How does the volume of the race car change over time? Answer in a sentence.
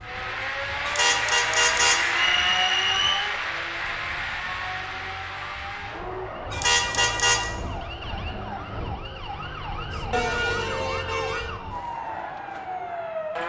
The volume of the race car goes down.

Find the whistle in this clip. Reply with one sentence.
You can hear the whistle from 2.1 to 3.2 s.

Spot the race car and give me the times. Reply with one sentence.
You can hear the race car from 0.0 to 13.4 s.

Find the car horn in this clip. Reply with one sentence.
You can hear the car horn from 0.8 to 2.3 s, from 6.5 to 7.5 s and from 10.1 to 11.5 s.